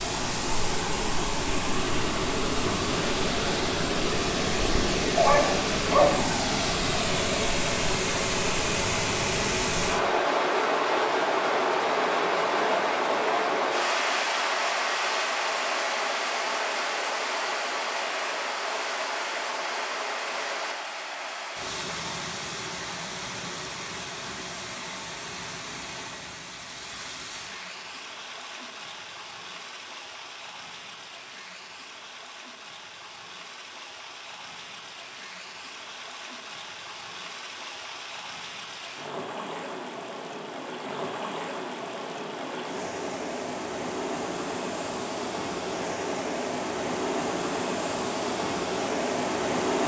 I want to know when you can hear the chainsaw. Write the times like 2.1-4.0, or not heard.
not heard.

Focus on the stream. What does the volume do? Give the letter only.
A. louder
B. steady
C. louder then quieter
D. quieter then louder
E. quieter
D.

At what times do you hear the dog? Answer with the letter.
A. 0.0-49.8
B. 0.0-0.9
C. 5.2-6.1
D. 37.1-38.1
C.